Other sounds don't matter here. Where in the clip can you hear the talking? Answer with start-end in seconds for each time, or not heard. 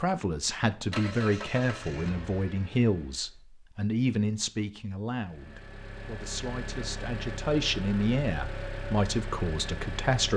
0.0-10.3.